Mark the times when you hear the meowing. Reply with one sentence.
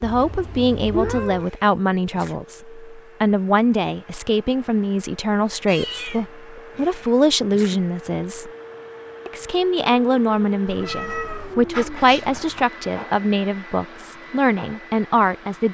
The meowing can be heard from 0.0 to 1.4 s, from 5.7 to 6.3 s and from 10.7 to 12.7 s.